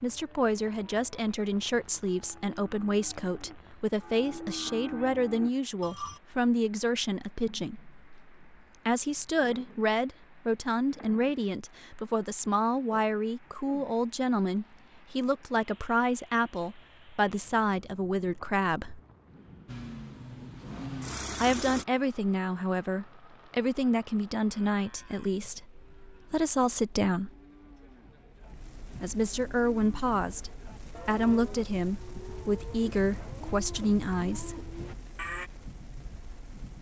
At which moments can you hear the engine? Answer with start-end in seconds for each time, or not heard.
19.6-21.9.